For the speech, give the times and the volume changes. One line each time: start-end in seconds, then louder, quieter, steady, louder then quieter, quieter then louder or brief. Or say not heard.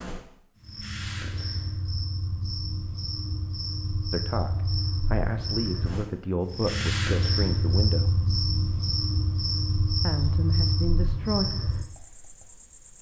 4.1-8.2 steady
10.0-11.4 brief.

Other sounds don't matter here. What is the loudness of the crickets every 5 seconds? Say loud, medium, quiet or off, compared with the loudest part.
medium, loud, loud.